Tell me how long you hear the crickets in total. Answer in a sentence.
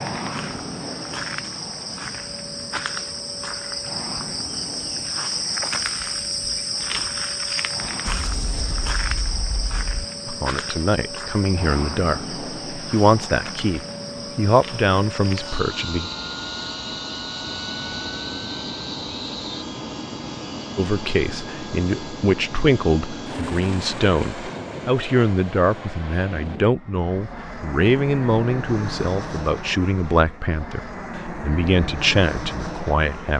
You can hear the crickets for 20 seconds altogether.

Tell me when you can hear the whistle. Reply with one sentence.
You can't hear the whistle here.